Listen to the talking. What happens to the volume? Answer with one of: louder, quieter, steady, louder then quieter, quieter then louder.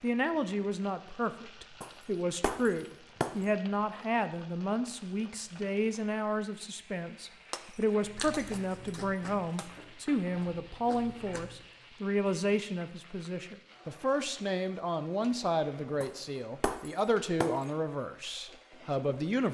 steady.